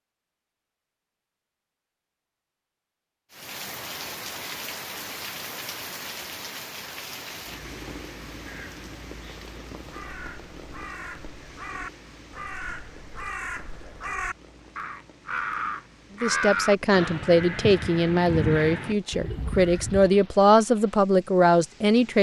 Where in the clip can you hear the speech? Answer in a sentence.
You can hear the speech from 16.2 to 22.1 s.